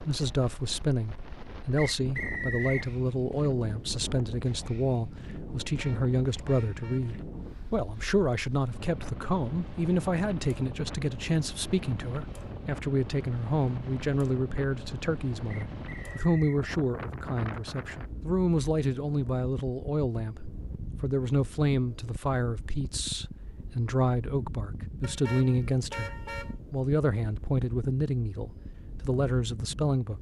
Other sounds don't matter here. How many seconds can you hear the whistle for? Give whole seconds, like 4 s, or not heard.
2 s.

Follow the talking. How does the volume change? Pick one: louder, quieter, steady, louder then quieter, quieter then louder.
steady.